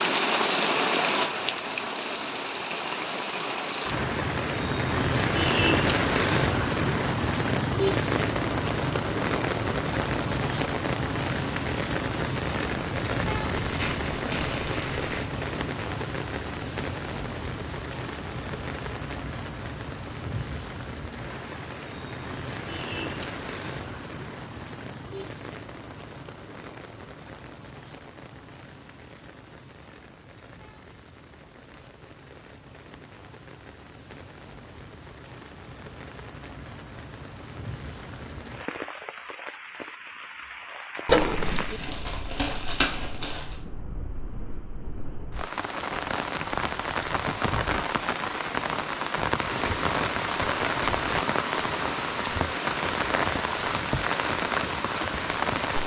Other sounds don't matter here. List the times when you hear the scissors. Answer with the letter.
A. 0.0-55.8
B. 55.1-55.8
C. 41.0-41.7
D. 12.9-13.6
C.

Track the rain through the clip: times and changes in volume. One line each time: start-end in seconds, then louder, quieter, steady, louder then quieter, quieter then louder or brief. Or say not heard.
0.0-55.8 quieter then louder.